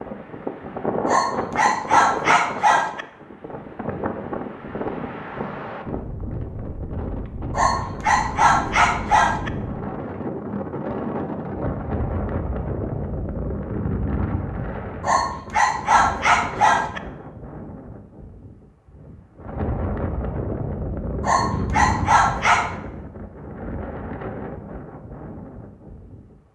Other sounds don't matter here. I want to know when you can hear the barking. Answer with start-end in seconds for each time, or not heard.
1.1-3.0, 7.5-9.5, 15.0-17.0, 21.2-22.8.